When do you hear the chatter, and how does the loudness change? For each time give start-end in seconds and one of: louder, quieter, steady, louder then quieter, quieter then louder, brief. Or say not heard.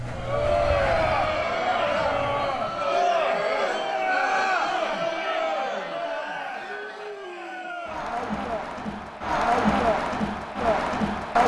0.1-11.4 quieter then louder.